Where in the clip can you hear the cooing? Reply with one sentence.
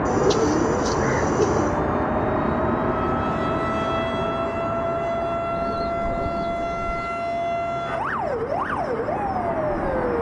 The cooing can be heard from 0.1 to 1.8 s and from 5.5 to 7.2 s.